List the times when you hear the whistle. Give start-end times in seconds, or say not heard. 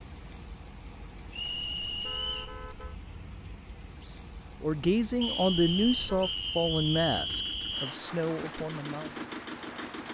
1.3-2.5, 5.2-8.0.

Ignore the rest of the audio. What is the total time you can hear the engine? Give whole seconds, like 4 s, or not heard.
3 s.